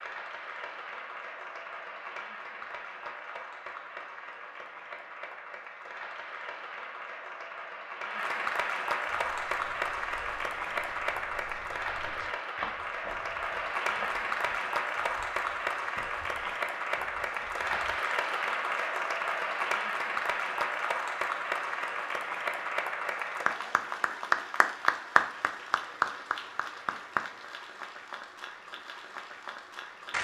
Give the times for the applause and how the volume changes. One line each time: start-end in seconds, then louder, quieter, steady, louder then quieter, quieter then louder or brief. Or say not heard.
0.0-30.1 louder.